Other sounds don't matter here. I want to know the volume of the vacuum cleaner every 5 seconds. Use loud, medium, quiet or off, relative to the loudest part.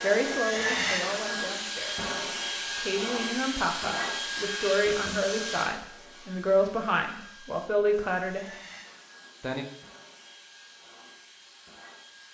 loud, medium, quiet.